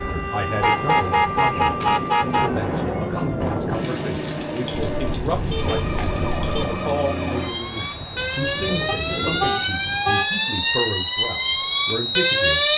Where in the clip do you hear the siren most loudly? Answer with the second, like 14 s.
12 s.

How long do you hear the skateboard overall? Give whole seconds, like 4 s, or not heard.
not heard.